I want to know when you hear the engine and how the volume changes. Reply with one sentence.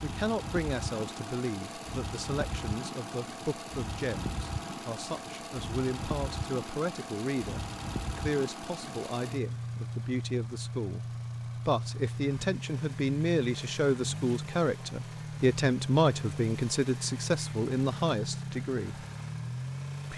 You can hear the engine from 0.0 to 20.1 s, at a steady volume.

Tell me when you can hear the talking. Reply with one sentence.
The talking can be heard from 0.0 to 11.1 s and from 11.7 to 19.1 s.